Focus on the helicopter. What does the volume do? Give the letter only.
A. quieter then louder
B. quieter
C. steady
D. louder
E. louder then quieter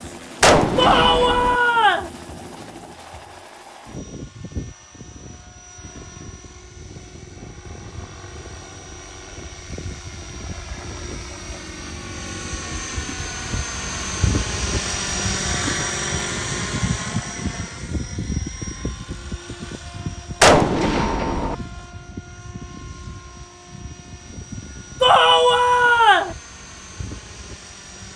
E.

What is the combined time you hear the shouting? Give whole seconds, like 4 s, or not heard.
3 s.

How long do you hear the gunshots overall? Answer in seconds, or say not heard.
2 s.